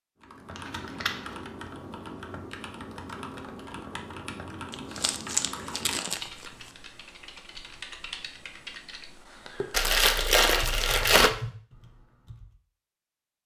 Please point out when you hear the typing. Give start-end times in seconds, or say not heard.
0.2-12.5.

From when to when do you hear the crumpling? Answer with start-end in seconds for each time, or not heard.
0.6-1.4, 4.7-6.5, 9.7-11.3.